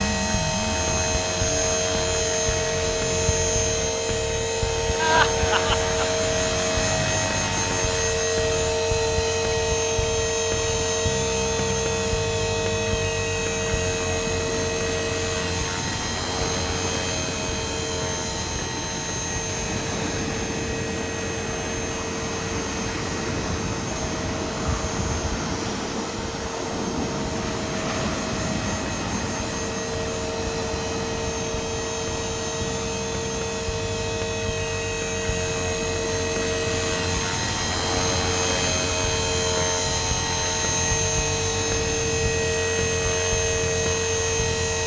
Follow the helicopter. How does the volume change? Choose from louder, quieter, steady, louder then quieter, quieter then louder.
quieter then louder.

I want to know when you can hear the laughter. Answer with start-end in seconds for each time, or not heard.
5.0-6.2.